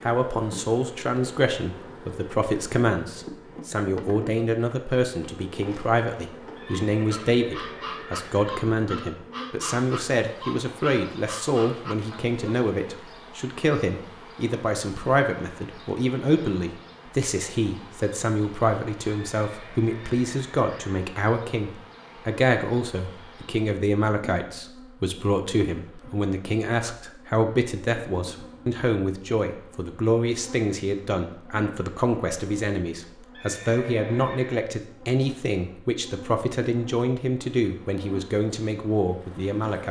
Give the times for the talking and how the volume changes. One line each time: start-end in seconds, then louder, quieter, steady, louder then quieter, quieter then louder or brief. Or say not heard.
0.0-39.8 steady.